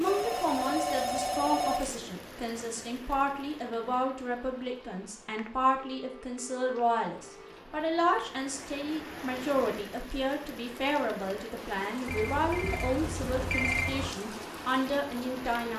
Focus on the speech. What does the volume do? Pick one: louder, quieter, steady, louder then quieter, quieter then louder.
steady.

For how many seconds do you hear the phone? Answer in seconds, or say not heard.
6 s.